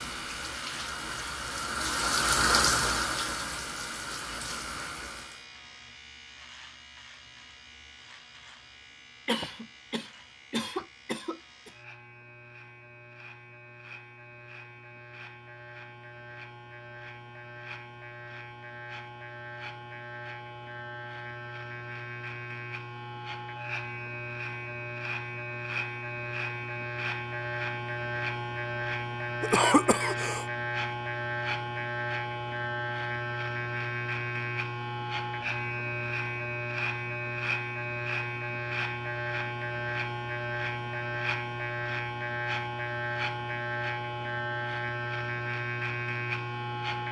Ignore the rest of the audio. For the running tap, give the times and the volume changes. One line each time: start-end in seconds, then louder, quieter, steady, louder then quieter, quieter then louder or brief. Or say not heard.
0.0-5.5 louder then quieter.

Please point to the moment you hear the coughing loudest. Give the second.
30 s.